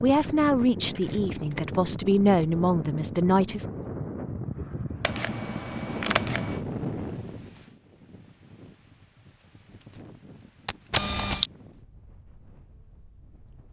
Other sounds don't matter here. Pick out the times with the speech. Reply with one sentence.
You can hear the speech from 0.0 to 3.6 s.